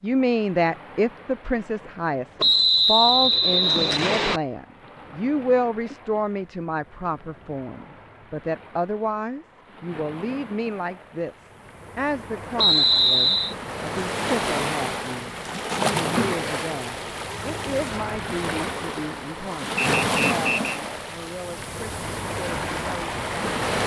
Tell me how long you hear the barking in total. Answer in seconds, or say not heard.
not heard.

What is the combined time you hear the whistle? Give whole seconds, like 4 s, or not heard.
4 s.